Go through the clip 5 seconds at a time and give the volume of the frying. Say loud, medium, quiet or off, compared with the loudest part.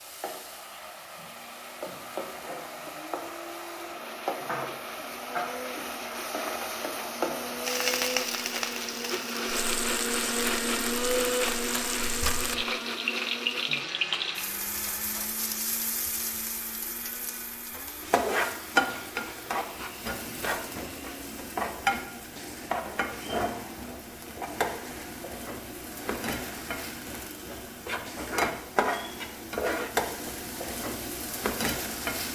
medium, loud, loud, loud, loud, loud, loud.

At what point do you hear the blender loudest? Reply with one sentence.
The volume of the blender peaks at 11 seconds.